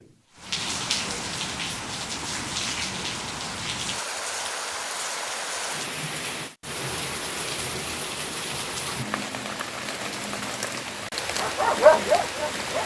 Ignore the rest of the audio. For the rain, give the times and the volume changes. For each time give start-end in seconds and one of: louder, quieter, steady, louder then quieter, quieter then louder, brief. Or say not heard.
0.0-12.8 steady.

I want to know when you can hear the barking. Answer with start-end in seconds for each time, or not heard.
11.3-12.8.